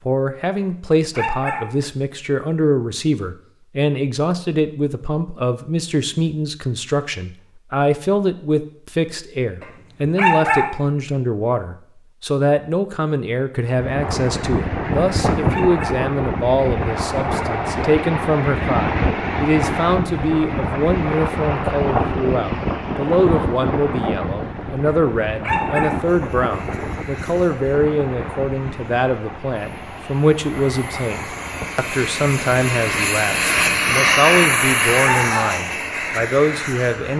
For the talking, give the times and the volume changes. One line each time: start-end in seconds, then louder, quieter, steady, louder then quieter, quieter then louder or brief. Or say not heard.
0.1-37.1 steady.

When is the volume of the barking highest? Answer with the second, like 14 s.
10 s.